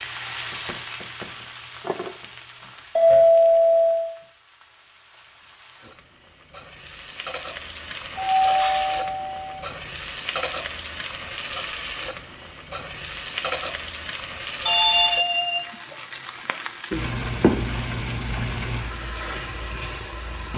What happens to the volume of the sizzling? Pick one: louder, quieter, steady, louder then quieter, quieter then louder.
louder.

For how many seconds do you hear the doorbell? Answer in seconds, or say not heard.
3 s.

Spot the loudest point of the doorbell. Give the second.
3 s.